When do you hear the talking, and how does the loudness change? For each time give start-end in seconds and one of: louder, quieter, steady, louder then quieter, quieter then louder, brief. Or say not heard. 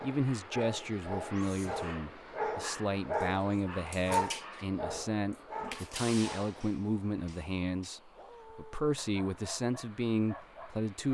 0.0-11.1 steady.